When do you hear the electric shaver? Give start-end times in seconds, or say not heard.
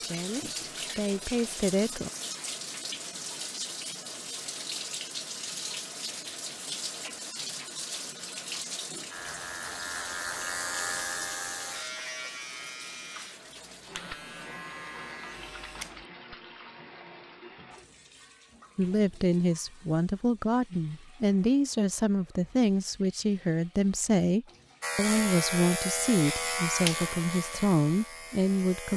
9.1-16.1, 24.8-28.9.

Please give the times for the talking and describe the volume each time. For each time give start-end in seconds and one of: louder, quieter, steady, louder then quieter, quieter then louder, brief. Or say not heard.
0.0-2.1 brief
18.8-28.9 steady.